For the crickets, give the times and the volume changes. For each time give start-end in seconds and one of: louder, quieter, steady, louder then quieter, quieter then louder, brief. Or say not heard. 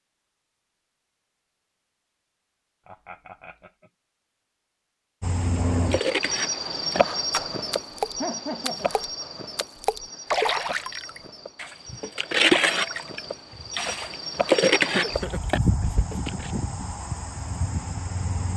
5.2-18.5 quieter then louder.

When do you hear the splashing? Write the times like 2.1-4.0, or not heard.
5.3-16.5.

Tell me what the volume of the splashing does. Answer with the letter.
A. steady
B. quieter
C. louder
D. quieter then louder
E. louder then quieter
C.